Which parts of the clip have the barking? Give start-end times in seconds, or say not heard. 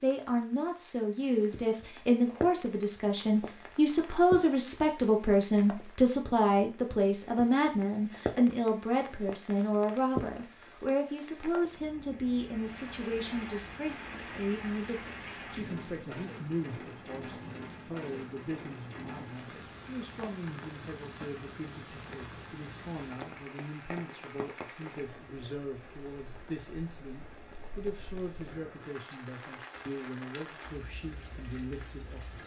not heard.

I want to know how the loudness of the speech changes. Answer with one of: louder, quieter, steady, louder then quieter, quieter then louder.
quieter.